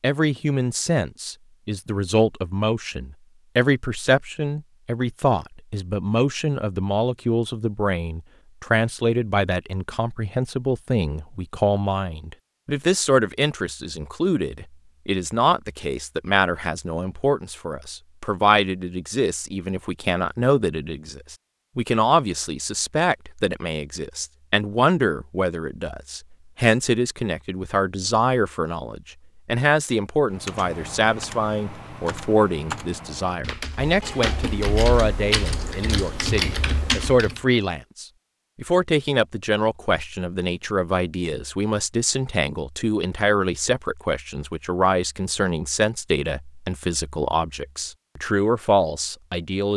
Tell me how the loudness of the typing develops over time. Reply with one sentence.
The volume of the typing goes up.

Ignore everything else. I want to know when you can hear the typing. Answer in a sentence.
The typing can be heard from 30.3 to 37.4 s.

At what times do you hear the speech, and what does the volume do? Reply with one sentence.
The speech can be heard from 0.0 to 49.7 s, at a steady volume.